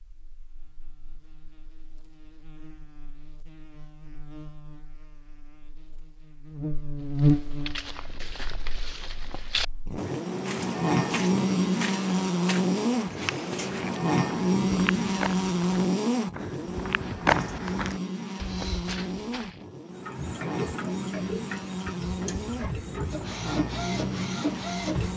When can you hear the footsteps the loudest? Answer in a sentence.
The volume of the footsteps peaks at 17 seconds.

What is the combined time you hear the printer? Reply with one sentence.
You can hear the printer for 5 seconds altogether.